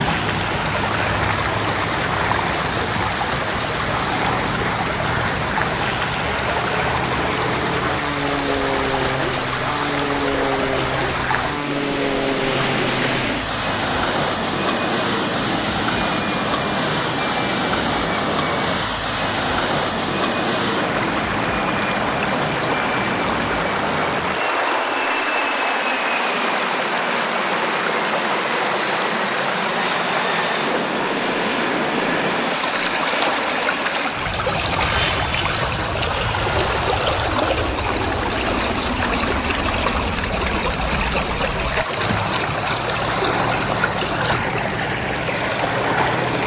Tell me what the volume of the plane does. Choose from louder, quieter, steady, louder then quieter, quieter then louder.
steady.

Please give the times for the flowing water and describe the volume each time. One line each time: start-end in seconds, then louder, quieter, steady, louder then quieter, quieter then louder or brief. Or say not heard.
0.0-46.4 steady.